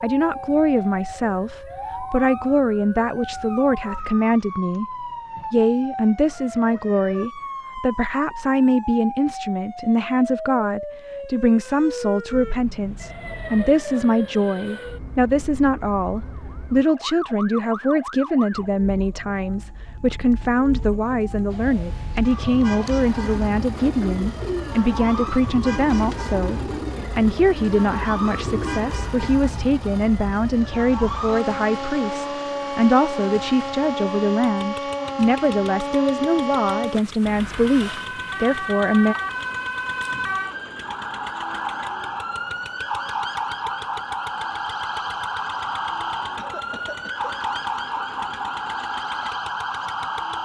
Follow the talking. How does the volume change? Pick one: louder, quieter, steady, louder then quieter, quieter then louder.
steady.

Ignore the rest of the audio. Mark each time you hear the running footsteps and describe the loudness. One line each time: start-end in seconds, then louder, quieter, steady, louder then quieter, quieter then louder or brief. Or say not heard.
not heard.